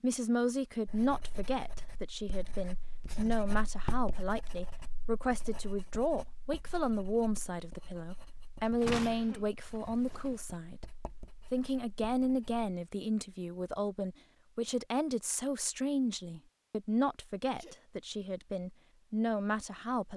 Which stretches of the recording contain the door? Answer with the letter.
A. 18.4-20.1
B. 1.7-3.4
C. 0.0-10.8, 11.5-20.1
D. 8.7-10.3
D.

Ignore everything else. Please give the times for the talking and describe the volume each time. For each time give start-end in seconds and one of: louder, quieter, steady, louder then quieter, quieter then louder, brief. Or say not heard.
0.0-10.8 steady
11.5-20.1 steady.